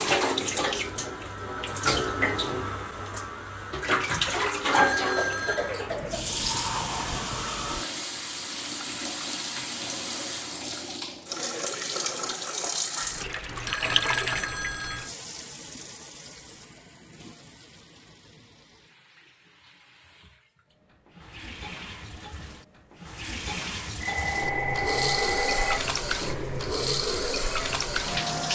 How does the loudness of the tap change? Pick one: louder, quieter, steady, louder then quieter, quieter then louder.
quieter then louder.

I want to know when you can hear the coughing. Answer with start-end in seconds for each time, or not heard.
5.2-6.4.